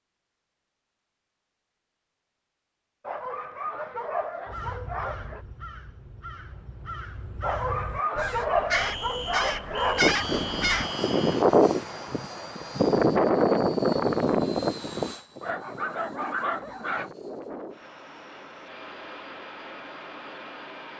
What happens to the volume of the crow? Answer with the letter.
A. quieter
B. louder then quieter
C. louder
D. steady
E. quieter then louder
C.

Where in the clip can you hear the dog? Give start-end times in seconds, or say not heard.
3.0-5.4, 7.4-10.2, 15.4-17.1.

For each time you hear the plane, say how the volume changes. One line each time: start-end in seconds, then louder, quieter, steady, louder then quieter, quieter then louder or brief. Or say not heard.
9.9-20.9 quieter.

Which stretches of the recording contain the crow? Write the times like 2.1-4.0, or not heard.
4.5-10.9.